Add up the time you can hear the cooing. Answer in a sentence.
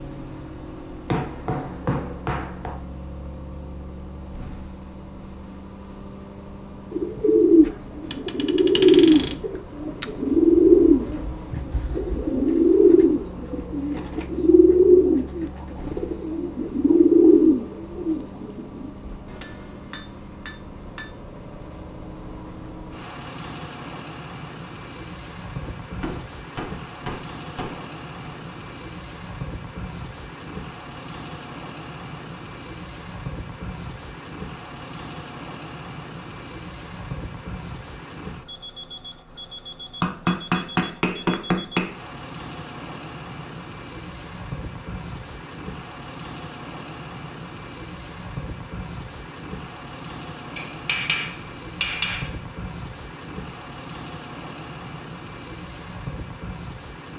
You can hear the cooing for 12 seconds altogether.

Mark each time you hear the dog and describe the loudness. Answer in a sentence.
You can't hear the dog here.